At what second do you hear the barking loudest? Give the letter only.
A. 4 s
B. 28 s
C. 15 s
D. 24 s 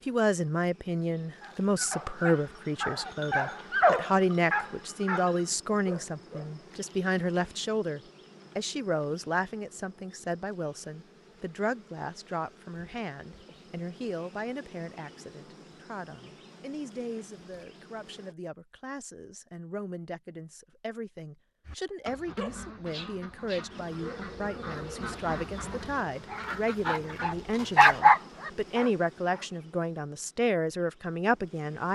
B.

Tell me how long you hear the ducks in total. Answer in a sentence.
The ducks can be heard for 6 seconds in total.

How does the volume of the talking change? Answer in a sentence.
The volume of the talking goes down, then up.